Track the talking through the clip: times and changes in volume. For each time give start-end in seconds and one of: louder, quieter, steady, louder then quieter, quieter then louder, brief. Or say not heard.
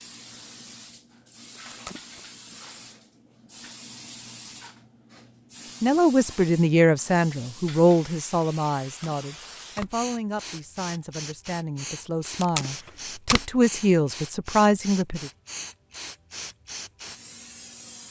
5.8-15.3 quieter then louder.